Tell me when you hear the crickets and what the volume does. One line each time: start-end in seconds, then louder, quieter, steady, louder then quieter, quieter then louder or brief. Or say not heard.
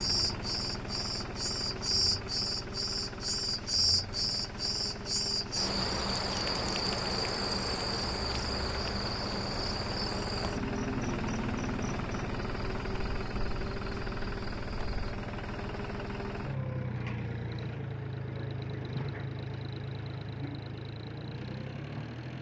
0.0-15.2 quieter.